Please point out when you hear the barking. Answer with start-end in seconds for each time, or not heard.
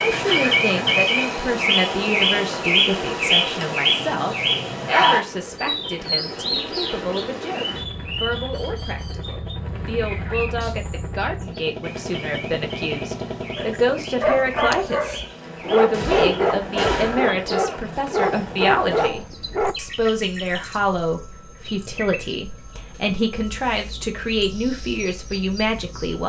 13.6-19.8.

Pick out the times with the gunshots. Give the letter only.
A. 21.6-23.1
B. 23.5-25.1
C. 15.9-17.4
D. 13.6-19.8
C.